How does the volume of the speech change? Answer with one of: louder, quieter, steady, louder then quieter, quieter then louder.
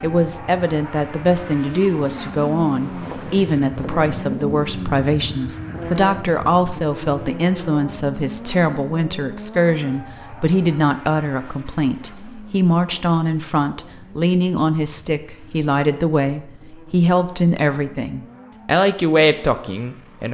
steady.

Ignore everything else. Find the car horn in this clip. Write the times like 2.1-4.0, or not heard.
not heard.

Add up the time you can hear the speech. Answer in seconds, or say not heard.
20 s.